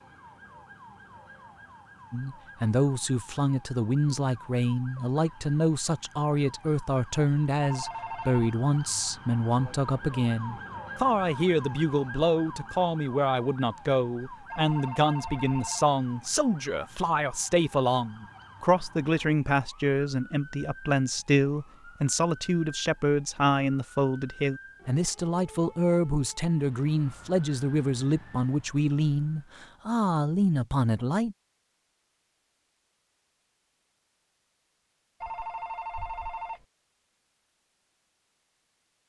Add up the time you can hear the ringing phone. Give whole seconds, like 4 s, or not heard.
4 s.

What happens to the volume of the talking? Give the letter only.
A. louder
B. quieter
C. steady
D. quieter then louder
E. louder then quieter
C.